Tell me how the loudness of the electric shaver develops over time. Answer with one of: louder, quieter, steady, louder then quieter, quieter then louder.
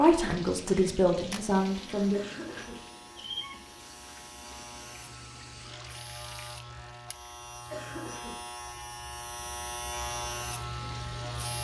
louder.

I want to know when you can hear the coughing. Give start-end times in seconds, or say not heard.
2.1-2.9, 7.7-8.9.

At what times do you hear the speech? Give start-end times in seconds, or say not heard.
0.0-2.2.